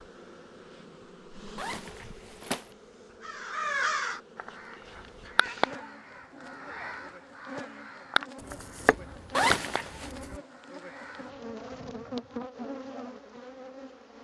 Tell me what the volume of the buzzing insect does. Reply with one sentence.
The loudness of the buzzing insect goes up.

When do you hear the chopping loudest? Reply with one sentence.
The loudest moment of the chopping is at 9 seconds.